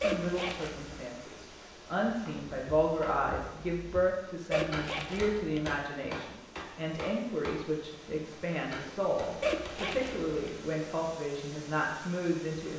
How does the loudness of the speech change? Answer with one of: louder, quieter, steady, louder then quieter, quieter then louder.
steady.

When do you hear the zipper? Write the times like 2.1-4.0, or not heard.
0.0-0.9, 4.5-5.7, 9.4-10.3.